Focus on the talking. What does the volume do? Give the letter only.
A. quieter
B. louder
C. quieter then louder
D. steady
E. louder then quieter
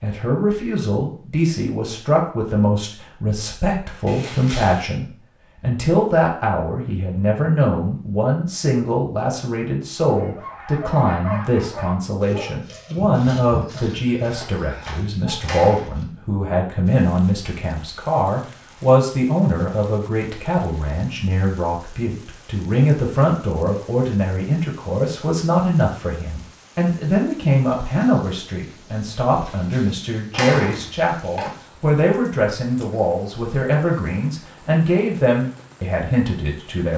D.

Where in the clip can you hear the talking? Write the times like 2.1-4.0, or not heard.
0.0-36.9.